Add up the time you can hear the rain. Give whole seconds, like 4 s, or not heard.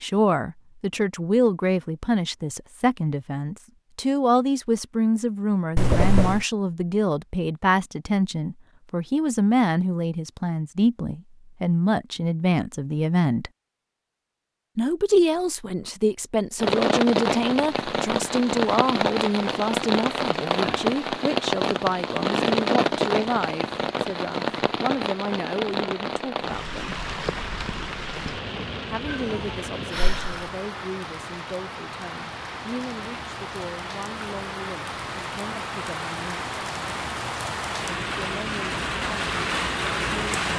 24 s.